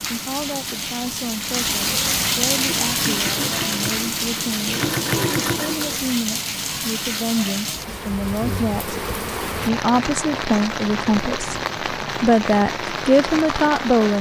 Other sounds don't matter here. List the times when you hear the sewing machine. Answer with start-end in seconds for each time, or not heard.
2.5-6.0.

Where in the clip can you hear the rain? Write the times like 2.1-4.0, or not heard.
0.0-14.1.